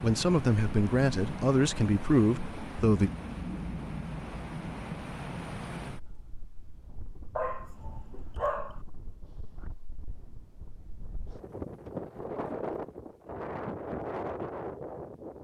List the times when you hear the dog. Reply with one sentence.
The dog can be heard from 7.3 to 8.8 s.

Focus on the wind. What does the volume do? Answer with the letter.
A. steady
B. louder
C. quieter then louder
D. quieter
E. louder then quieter
C.